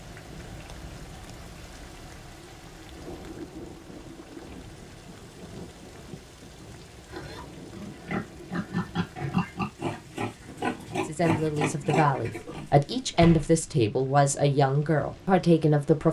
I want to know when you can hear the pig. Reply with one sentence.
The pig can be heard from 7.0 to 12.7 s.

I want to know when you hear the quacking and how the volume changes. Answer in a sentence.
You can't hear the quacking here.